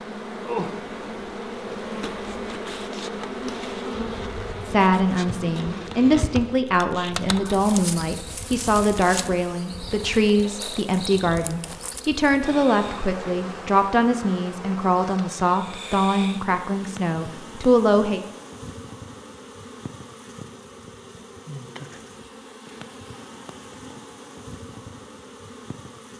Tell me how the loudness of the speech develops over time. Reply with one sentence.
The volume of the speech stays about the same.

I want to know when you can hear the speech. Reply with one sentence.
The speech can be heard from 4.7 to 18.2 s.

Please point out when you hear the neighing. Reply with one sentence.
You can't hear the neighing here.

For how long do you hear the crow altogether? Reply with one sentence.
You can't hear the crow here.